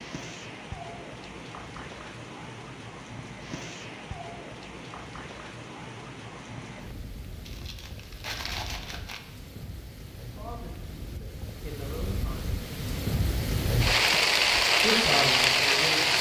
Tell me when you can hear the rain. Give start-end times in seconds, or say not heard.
0.0-16.1.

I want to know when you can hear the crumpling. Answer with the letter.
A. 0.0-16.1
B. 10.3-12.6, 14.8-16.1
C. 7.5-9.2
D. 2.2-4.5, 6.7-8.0
C.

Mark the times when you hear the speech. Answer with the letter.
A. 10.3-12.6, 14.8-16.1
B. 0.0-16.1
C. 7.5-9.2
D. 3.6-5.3
A.